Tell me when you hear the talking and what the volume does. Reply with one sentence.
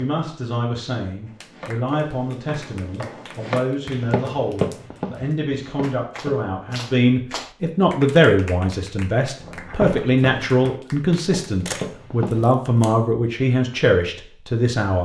The talking can be heard from 0.0 to 14.9 s, getting louder.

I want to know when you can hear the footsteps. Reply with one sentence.
The footsteps can be heard from 1.2 to 6.8 s and from 9.4 to 12.4 s.